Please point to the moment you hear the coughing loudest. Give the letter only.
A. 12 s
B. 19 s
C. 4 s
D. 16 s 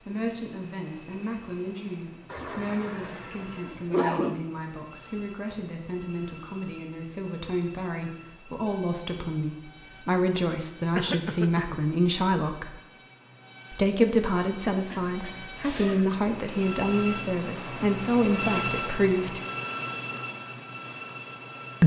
C.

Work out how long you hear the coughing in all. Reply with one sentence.
You can hear the coughing for 4 seconds altogether.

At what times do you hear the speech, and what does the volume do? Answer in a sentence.
The speech can be heard from 0.1 to 12.8 s, getting louder; and from 13.7 to 19.4 s, at a steady volume.